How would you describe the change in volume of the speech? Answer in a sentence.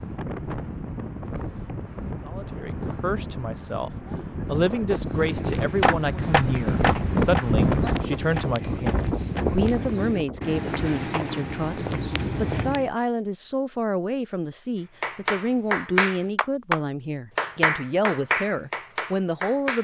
The volume of the speech stays about the same.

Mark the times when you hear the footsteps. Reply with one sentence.
You can hear the footsteps from 5.0 to 12.9 s.